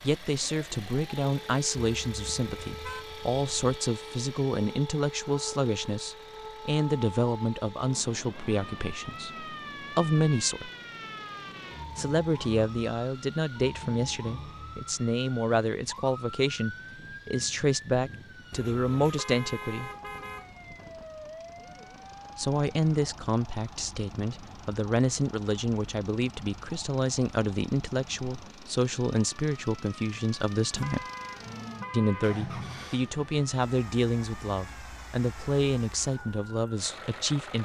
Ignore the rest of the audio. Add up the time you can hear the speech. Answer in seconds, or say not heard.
33 s.